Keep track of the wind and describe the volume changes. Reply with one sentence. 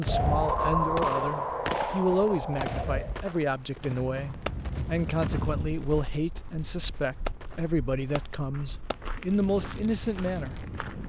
The volume of the wind goes down, then up.